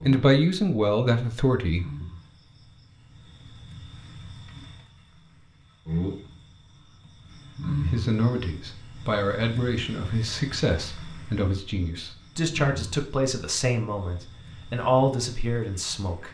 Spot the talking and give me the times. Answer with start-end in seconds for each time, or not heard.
0.1-2.0, 7.7-16.2.